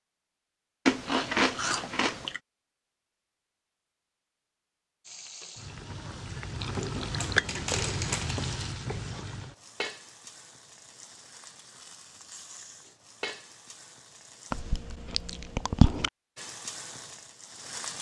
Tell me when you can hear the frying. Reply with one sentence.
The frying can be heard from 5.0 to 14.7 s and from 16.4 to 17.9 s.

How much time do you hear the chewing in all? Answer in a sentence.
You can hear the chewing for 5 seconds altogether.